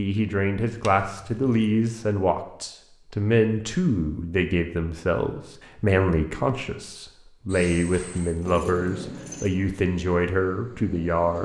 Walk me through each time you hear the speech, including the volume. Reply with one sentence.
The speech can be heard from 0.0 to 11.4 s, at a steady volume.